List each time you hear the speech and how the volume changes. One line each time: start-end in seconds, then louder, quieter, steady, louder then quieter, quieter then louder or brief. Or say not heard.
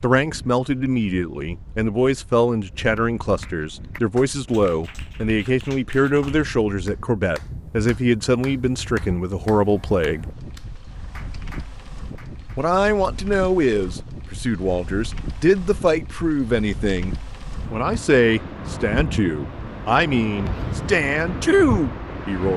0.0-10.2 steady
12.6-22.5 steady.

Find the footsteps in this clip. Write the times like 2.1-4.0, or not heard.
not heard.